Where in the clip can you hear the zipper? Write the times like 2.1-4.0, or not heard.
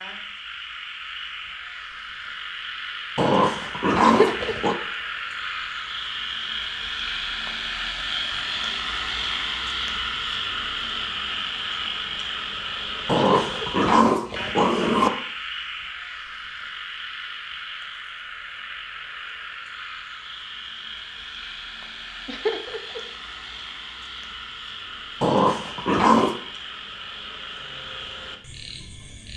not heard.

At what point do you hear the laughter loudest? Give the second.
4 s.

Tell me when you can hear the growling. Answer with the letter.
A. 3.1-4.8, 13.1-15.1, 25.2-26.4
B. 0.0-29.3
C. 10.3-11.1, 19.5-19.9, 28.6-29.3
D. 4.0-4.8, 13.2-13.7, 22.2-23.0
A.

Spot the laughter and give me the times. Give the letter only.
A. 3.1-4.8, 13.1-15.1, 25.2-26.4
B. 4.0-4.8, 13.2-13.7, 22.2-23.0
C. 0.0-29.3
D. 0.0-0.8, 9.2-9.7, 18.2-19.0
B.